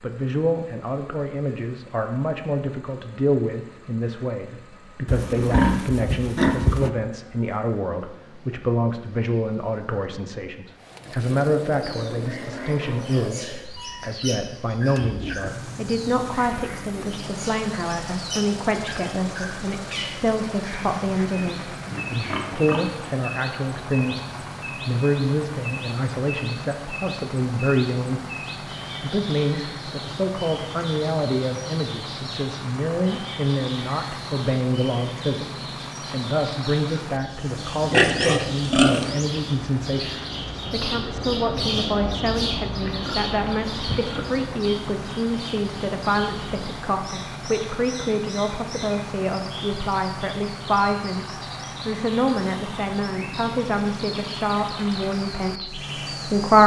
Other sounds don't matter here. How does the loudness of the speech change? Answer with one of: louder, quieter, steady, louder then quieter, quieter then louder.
steady.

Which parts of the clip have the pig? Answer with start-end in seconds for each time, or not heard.
5.0-6.9, 21.0-23.1, 37.8-39.3, 42.8-44.4.